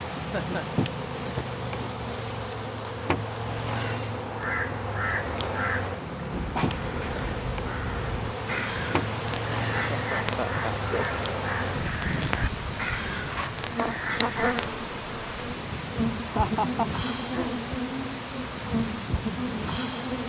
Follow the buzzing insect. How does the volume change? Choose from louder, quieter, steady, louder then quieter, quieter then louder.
steady.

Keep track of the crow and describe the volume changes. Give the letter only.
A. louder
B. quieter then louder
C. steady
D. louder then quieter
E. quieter
C.